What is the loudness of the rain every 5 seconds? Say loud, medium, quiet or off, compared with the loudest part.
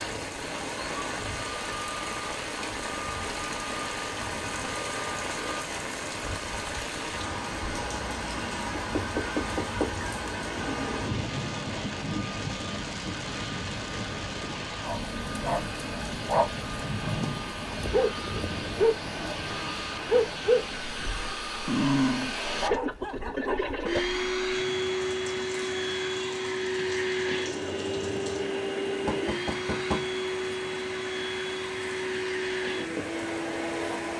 loud, loud, loud, medium, quiet, medium, medium.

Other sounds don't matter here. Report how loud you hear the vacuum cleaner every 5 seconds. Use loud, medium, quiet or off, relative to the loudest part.
medium, medium, medium, medium, loud, loud, loud.